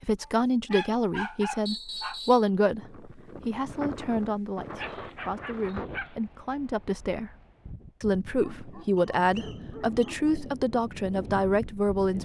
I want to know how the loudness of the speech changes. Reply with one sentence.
The loudness of the speech goes down, then up.